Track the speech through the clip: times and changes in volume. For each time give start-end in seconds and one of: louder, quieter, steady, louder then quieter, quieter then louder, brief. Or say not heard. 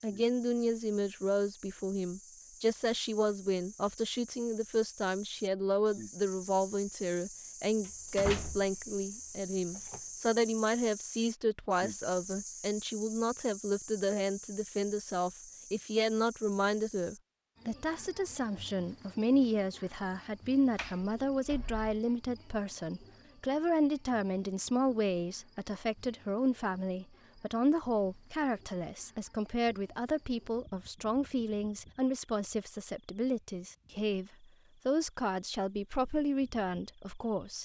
0.0-37.5 steady.